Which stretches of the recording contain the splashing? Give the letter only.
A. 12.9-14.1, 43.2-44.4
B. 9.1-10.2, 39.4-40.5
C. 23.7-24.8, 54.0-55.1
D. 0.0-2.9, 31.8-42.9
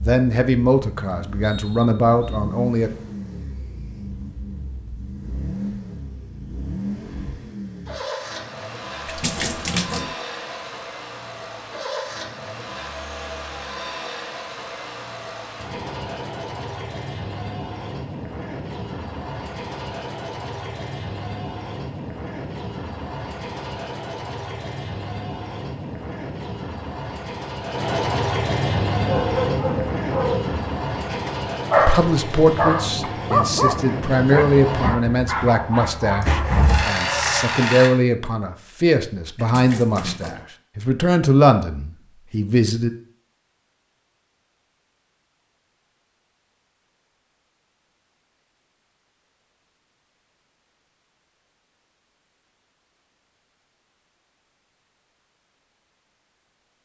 B.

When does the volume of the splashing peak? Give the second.
10 s.